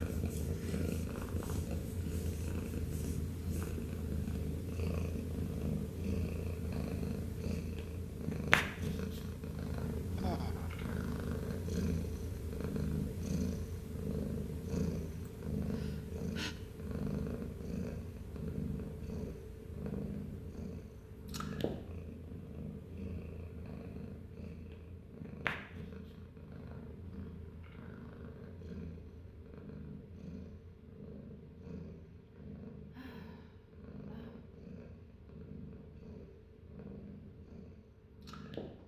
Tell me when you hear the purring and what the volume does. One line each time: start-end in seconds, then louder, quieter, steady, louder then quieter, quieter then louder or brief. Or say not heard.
0.0-38.8 quieter.